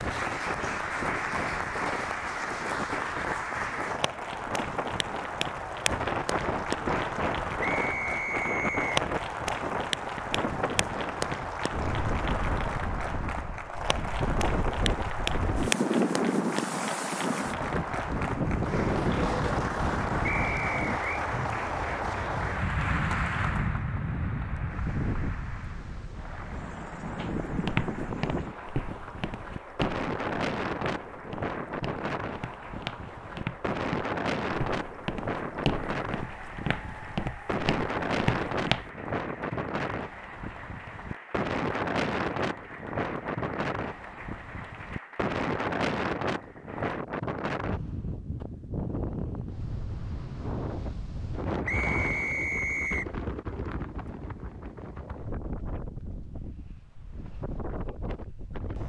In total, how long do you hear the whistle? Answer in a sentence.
You can hear the whistle for 4 seconds altogether.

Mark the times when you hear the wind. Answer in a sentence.
You can hear the wind from 0.0 to 58.8 s.